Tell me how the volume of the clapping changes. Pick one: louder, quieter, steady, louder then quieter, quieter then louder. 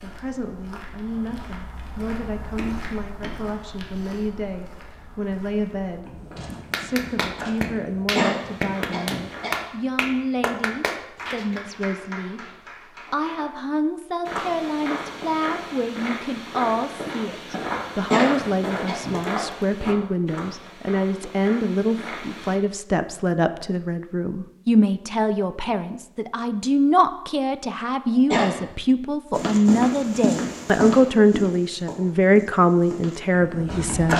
quieter.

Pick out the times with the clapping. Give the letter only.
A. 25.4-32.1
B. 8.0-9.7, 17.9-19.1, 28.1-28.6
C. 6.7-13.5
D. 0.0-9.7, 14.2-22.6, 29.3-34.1
C.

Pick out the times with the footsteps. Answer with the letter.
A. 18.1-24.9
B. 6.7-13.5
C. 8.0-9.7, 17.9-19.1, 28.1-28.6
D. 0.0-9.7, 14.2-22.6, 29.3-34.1
D.